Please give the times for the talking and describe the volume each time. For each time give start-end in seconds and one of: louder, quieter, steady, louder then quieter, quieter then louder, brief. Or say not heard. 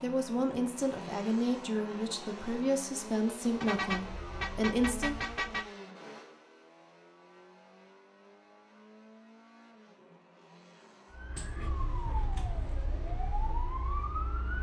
0.0-5.2 steady.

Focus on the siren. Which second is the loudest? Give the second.
14 s.